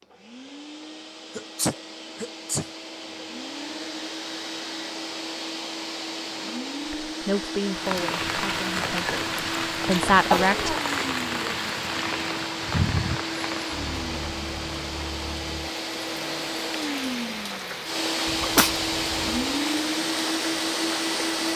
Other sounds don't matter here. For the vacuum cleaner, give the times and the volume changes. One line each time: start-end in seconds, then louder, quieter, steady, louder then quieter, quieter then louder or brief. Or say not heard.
0.0-21.5 louder.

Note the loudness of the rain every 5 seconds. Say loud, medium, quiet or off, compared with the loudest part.
off, loud, loud, medium, medium.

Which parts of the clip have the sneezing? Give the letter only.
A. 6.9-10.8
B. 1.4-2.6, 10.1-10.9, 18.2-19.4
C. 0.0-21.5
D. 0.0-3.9
B.